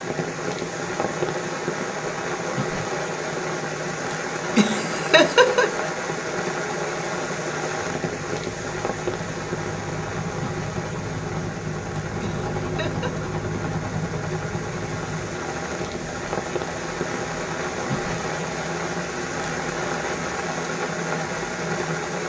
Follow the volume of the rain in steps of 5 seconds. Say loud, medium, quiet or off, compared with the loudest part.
loud, loud, medium, loud, loud.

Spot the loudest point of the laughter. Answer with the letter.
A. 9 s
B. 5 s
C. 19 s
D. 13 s
B.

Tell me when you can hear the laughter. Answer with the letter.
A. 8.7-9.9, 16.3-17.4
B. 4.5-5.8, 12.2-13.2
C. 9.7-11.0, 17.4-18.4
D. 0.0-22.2
B.